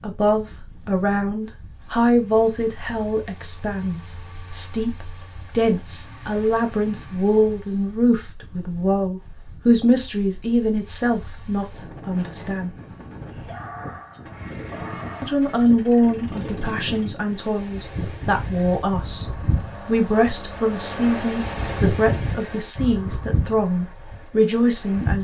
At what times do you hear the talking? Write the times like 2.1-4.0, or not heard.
0.0-12.7, 15.2-19.2, 19.9-25.1.